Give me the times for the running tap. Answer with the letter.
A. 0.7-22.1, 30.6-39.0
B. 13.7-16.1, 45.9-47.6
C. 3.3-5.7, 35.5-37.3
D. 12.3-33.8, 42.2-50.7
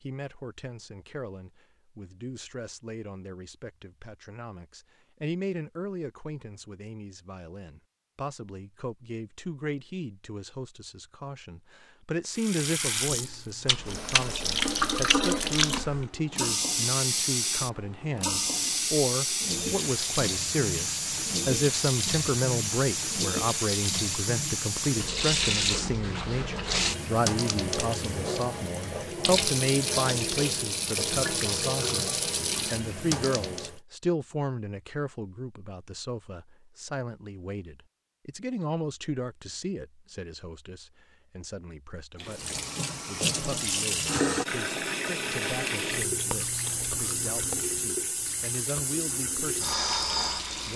D.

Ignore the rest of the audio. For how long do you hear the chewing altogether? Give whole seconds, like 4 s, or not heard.
4 s.